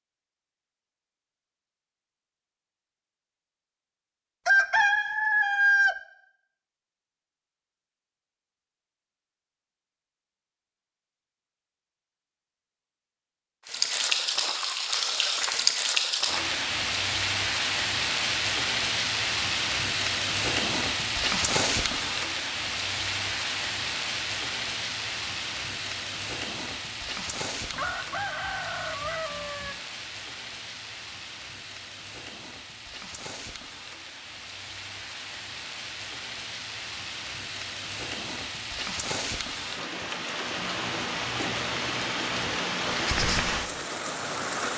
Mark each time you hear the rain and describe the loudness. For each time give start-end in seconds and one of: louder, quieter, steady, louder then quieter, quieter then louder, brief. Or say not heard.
13.7-44.7 quieter then louder.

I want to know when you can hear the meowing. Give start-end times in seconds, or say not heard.
not heard.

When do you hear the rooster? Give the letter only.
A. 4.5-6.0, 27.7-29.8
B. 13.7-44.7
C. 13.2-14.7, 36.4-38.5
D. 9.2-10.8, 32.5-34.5
A.